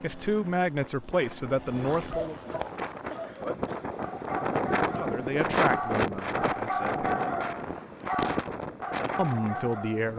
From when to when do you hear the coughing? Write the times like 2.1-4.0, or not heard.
3.1-3.9.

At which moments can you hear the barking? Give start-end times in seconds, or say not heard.
2.0-10.1.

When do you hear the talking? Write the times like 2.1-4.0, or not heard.
0.0-2.4, 5.0-7.1, 9.2-10.1.